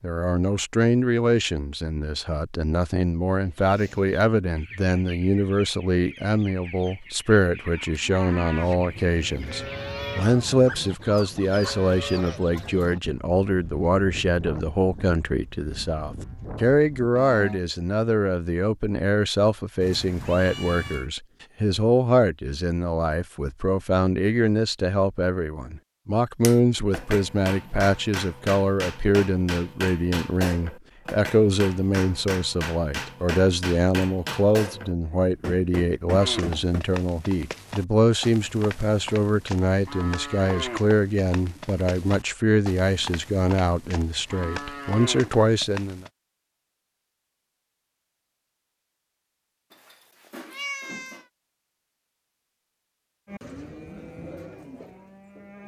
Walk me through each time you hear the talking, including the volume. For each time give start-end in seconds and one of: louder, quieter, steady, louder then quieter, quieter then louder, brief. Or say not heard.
0.0-46.0 steady.